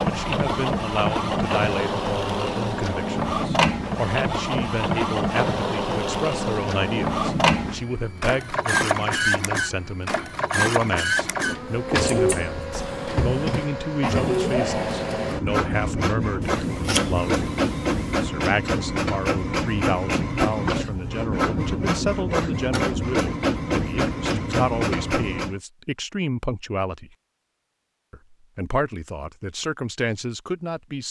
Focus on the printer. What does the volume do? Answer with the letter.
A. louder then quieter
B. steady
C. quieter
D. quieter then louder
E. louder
B.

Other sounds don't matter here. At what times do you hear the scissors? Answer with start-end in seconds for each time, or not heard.
12.0-12.6, 16.4-18.3.